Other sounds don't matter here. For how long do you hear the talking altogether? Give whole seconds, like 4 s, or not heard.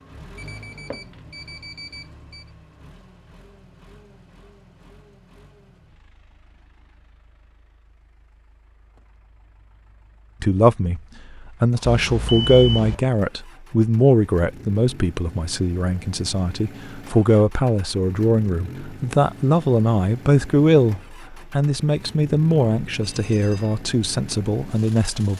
14 s.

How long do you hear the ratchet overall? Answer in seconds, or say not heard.
not heard.